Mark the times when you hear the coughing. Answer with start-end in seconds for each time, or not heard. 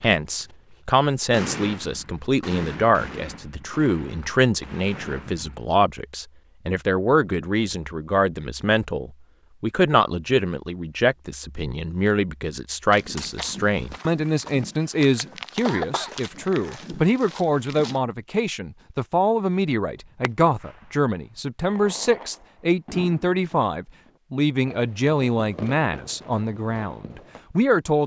15.7-16.9.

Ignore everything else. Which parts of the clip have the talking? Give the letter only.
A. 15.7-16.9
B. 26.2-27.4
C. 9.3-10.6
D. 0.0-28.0
D.